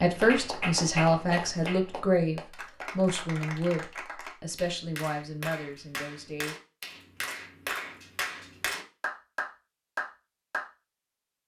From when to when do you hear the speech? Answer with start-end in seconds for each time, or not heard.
0.0-6.5.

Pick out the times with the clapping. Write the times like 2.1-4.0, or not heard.
0.1-10.7.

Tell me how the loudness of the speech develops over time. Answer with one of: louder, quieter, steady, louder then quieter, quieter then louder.
quieter.